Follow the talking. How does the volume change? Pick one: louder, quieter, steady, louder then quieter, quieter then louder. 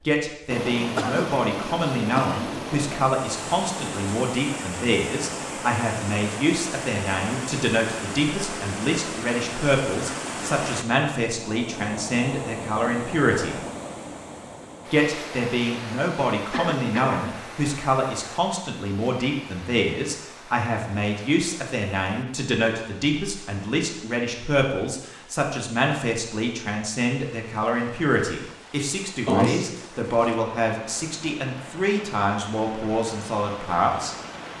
steady.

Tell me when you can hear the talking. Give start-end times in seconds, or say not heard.
0.0-13.6, 14.8-34.1.